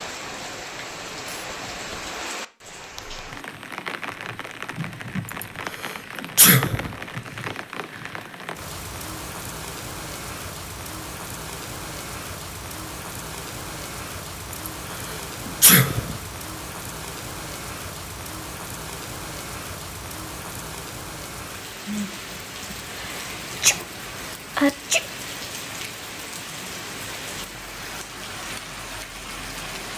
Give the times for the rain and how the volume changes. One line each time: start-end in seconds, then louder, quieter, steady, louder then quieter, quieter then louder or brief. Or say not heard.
0.0-29.9 steady.